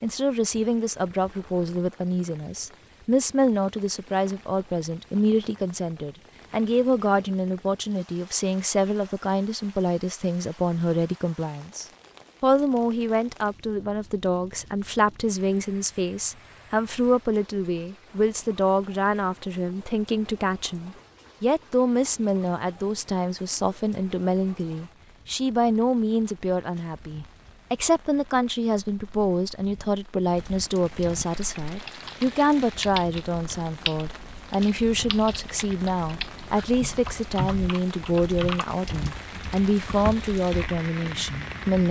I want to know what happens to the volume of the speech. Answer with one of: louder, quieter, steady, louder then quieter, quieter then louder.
steady.